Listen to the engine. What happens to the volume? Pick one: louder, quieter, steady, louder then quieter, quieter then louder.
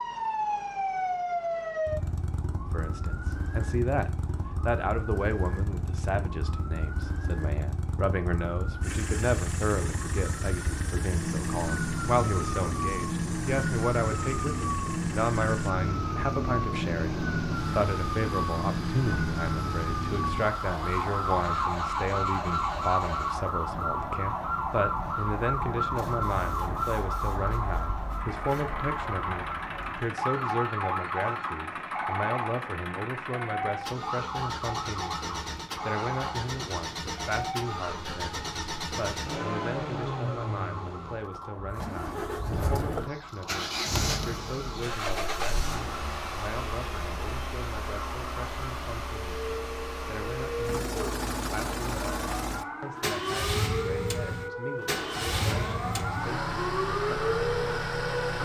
louder.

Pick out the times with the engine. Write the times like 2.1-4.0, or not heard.
8.8-58.4.